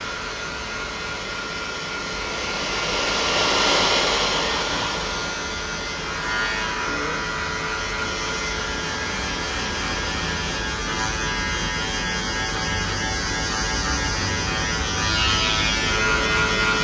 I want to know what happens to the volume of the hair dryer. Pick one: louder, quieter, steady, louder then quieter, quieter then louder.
louder then quieter.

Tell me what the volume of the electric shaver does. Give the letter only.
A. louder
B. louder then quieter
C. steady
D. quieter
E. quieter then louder
A.